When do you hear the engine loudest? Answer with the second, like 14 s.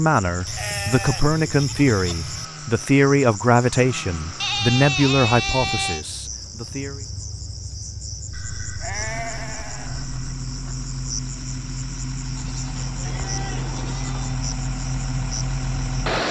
16 s.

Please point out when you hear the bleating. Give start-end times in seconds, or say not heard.
0.5-2.5, 4.4-6.0, 8.3-10.1, 12.3-14.3.